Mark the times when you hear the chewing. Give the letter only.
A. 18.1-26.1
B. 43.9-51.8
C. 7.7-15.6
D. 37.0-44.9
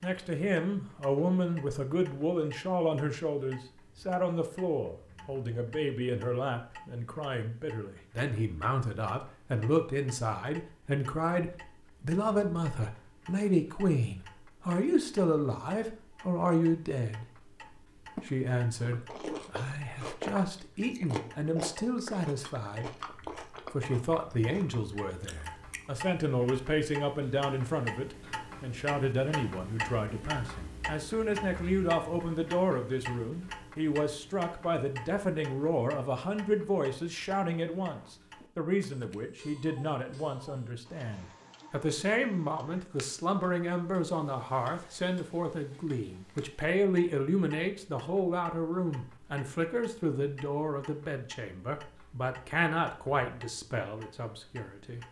A.